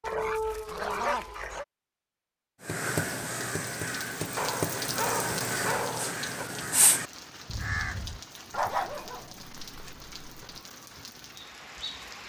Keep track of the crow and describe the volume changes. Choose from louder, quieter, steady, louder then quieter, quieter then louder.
steady.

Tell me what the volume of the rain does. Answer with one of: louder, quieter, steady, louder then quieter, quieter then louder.
quieter.